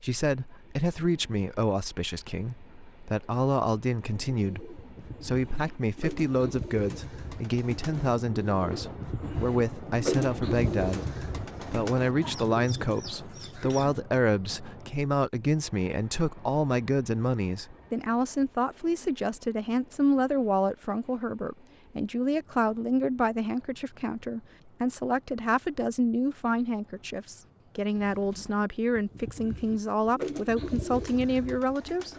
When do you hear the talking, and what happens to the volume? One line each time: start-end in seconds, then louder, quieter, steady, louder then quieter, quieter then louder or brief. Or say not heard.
0.0-32.1 steady.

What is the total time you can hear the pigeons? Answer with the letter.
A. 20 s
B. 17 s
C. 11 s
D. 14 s
D.